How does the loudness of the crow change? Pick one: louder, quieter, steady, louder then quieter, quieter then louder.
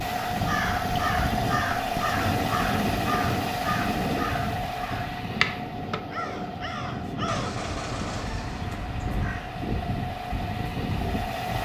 quieter.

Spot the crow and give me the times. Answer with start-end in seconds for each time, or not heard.
0.1-9.6.